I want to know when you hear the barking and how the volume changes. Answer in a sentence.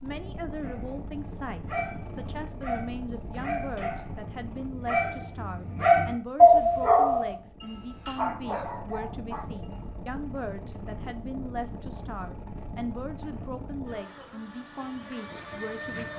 The barking can be heard from 0.6 to 10.2 s, getting louder then quieter.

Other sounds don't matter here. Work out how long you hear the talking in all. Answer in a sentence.
The talking can be heard for 16 seconds in total.